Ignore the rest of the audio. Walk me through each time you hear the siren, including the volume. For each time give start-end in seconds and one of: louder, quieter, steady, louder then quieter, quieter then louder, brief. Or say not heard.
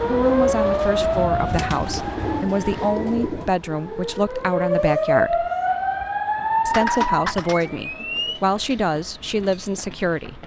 0.0-8.4 quieter then louder.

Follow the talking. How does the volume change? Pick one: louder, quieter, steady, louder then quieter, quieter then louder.
steady.